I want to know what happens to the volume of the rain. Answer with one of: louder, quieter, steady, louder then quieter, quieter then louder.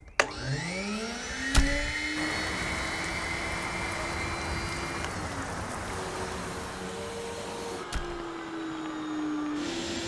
quieter.